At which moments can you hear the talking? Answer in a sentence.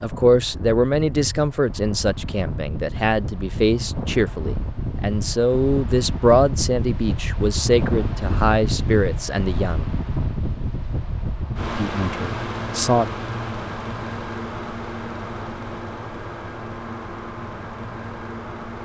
You can hear the talking from 0.0 to 9.8 s and from 11.8 to 13.1 s.